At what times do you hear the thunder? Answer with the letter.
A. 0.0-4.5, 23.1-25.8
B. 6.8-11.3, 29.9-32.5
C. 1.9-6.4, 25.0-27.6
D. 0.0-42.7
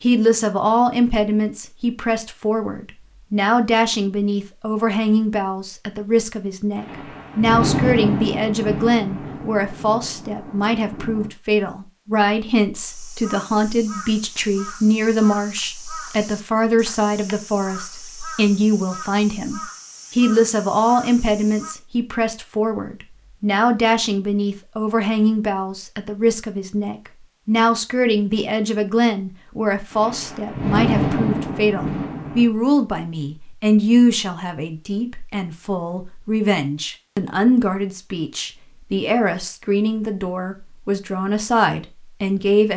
B.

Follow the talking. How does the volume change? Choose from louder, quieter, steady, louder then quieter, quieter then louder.
steady.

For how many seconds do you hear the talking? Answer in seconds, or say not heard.
43 s.